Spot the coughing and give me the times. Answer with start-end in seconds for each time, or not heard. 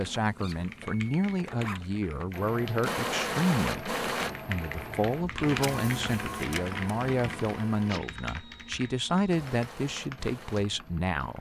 not heard.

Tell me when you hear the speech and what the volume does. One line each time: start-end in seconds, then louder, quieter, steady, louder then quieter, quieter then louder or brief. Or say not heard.
0.0-11.3 steady.